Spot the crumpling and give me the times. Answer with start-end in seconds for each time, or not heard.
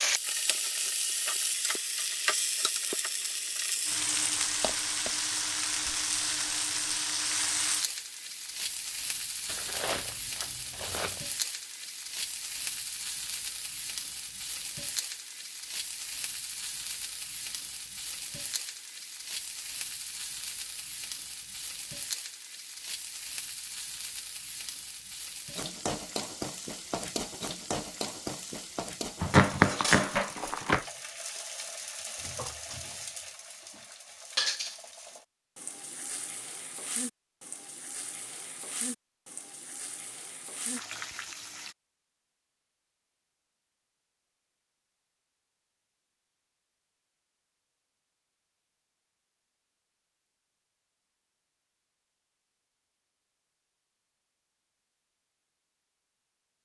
9.4-11.2, 29.2-30.9.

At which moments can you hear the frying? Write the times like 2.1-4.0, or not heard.
0.0-41.8.